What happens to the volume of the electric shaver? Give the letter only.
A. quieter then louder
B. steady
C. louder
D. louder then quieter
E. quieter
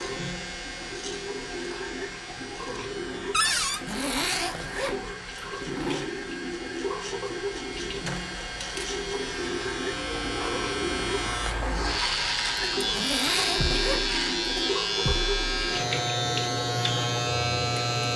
C.